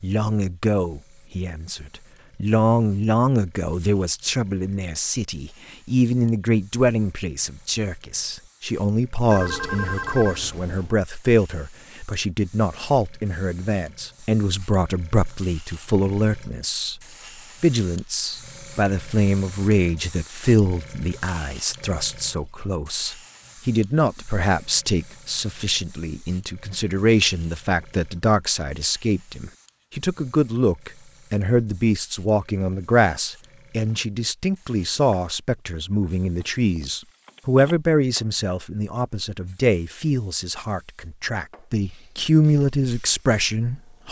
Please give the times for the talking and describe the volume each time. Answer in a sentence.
The talking can be heard from 0.0 to 17.0 s, at a steady volume; and from 17.6 to 44.0 s, at a steady volume.